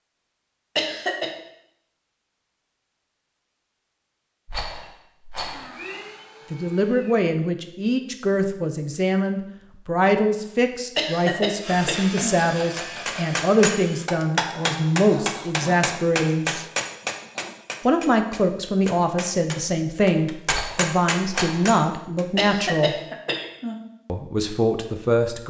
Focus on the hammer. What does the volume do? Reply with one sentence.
The loudness of the hammer goes down, then up.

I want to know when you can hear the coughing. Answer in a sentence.
You can hear the coughing from 0.8 to 1.3 s, from 10.9 to 12.3 s and from 22.4 to 23.8 s.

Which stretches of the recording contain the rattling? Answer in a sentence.
The rattling can be heard from 4.5 to 5.7 s, from 11.9 to 13.4 s and from 20.5 to 21.7 s.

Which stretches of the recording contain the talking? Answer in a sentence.
The talking can be heard from 6.5 to 16.6 s, from 17.9 to 22.9 s and from 24.1 to 25.4 s.